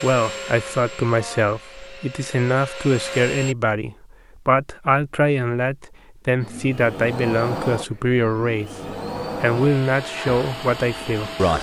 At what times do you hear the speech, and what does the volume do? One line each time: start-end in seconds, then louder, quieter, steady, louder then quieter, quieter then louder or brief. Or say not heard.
0.0-8.7 steady
9.4-11.5 brief.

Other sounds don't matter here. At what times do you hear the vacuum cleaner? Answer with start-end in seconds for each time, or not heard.
0.0-3.5, 6.4-11.5.